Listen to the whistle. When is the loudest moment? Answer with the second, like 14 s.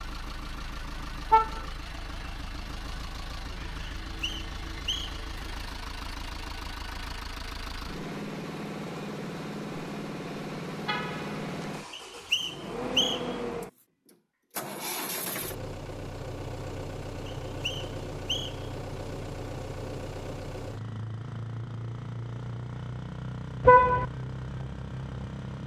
13 s.